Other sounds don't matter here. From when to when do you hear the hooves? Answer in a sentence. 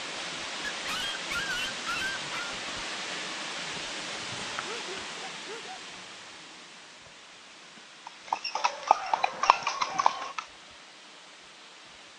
You can hear the hooves from 8.1 to 10.4 s.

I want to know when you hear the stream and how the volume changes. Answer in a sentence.
The stream can be heard from 0.0 to 12.1 s, getting quieter.